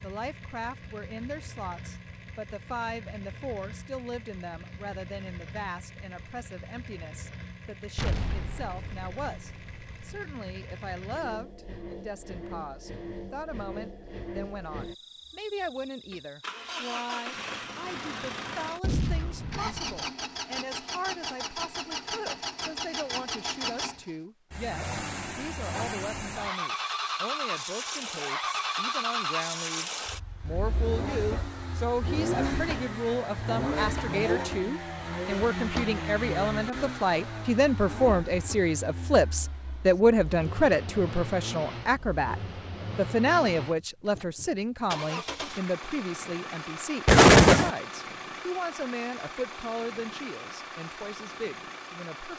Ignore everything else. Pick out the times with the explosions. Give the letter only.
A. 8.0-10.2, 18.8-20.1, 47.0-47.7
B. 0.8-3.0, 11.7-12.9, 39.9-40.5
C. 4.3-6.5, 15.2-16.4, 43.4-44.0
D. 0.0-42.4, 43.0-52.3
A.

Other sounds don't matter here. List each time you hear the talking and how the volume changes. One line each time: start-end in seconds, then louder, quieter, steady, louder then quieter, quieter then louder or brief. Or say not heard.
0.0-42.4 louder
43.0-52.3 quieter.